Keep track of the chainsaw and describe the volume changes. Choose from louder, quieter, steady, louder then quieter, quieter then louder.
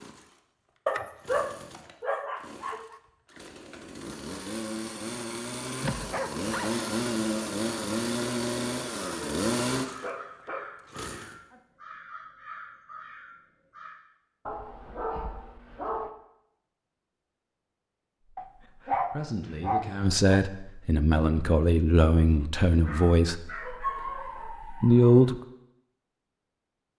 louder.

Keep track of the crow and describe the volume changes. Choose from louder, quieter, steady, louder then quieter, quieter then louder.
steady.